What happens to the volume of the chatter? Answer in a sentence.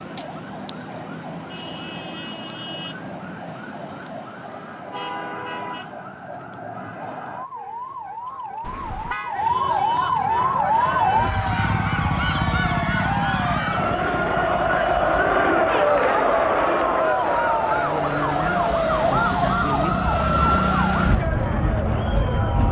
The volume of the chatter goes up, then down.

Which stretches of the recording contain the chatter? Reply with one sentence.
The chatter can be heard from 10.3 to 22.6 s.